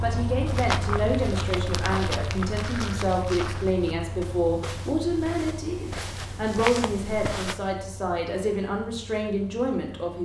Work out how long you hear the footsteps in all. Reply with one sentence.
The footsteps can be heard for 7 seconds in total.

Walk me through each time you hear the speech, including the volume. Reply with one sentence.
You can hear the speech from 0.0 to 10.2 s, at a steady volume.